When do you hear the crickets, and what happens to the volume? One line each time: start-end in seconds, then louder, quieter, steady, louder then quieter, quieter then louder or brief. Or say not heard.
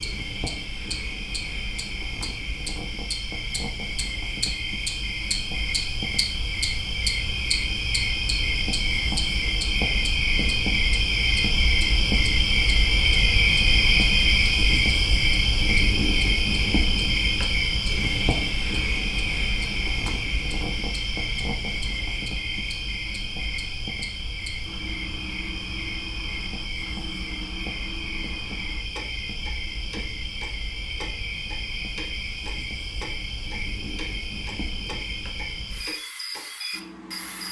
0.0-37.4 louder then quieter.